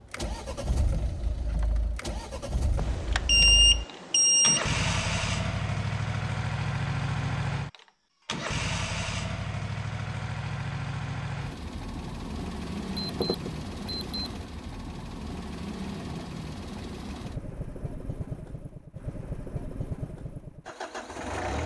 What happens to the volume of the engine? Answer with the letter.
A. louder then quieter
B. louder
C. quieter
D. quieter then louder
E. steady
A.